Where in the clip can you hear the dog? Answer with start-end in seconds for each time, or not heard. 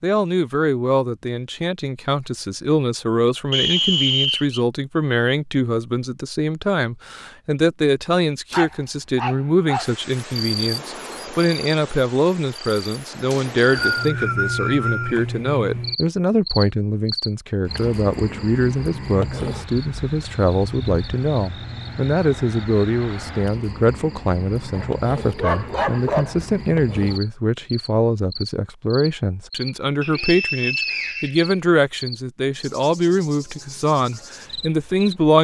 8.5-9.9, 24.7-26.4.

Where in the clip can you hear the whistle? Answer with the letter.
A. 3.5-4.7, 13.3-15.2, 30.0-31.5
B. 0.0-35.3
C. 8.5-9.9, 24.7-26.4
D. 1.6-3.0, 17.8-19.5
A.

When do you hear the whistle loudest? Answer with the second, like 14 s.
4 s.